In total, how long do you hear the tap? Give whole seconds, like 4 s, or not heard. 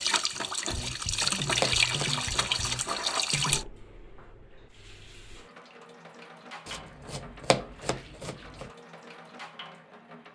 10 s.